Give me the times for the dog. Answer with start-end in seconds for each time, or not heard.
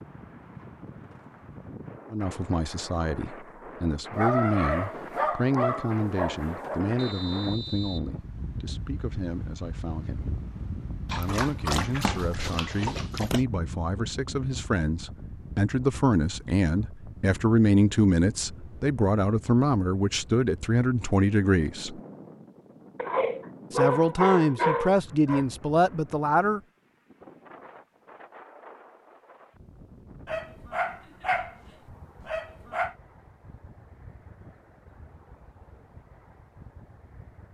4.2-6.8, 11.1-13.4, 22.9-25.4, 30.2-31.6, 32.2-33.0.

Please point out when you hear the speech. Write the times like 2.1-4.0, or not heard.
2.1-10.3, 11.2-22.0, 23.7-26.6.